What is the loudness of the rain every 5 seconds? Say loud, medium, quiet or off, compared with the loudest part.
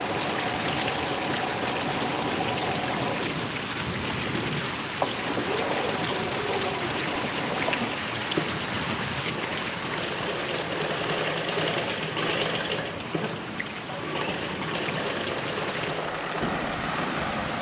loud, loud, medium, loud.